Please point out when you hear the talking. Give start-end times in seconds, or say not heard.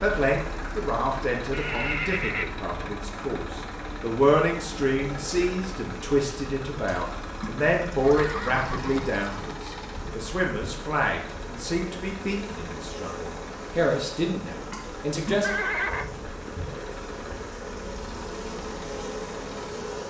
0.0-15.5.